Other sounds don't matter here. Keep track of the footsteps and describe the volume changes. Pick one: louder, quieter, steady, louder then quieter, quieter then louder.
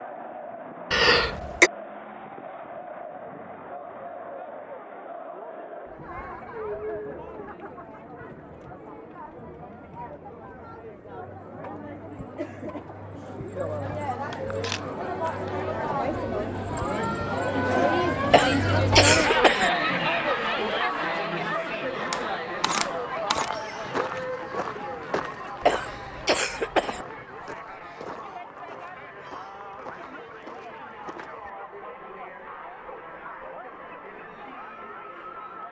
quieter.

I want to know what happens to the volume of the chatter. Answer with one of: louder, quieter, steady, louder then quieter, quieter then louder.
louder then quieter.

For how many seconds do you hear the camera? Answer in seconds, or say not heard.
3 s.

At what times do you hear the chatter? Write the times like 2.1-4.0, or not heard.
0.0-35.6.